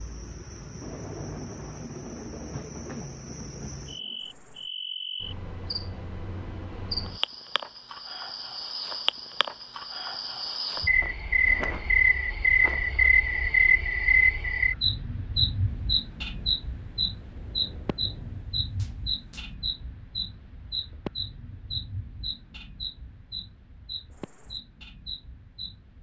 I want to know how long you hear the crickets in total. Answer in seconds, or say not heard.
26 s.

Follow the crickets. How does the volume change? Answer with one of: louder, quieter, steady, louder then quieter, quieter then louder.
louder then quieter.